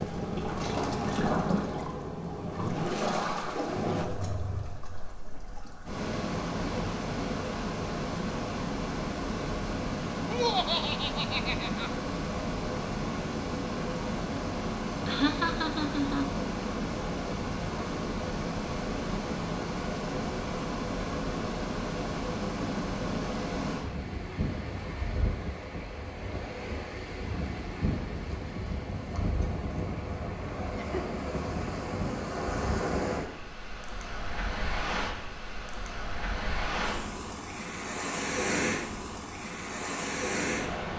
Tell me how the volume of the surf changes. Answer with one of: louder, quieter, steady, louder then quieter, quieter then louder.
steady.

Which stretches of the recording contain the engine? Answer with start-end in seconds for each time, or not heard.
0.0-4.0.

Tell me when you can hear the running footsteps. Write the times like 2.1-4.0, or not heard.
not heard.